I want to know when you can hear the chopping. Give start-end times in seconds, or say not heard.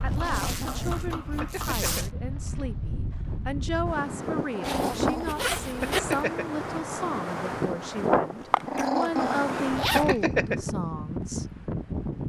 0.0-2.0.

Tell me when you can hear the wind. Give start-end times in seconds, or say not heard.
0.0-12.2.